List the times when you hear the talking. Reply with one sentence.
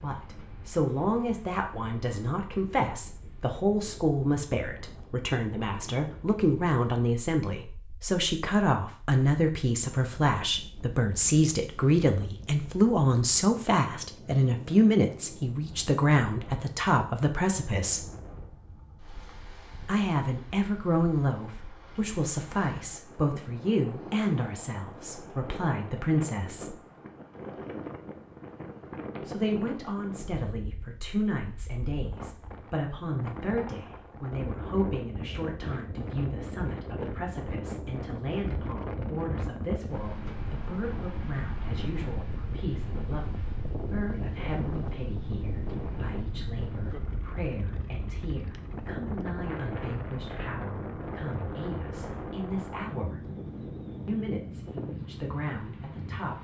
The talking can be heard from 0.0 to 18.1 s, from 19.9 to 26.8 s, from 29.2 to 53.2 s and from 54.0 to 56.3 s.